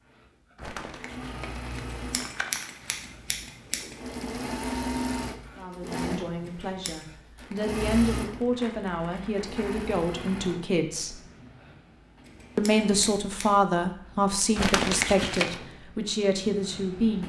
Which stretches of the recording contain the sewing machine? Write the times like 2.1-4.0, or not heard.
0.0-17.2.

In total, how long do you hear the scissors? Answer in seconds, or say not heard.
4 s.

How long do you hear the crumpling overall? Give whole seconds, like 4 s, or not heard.
6 s.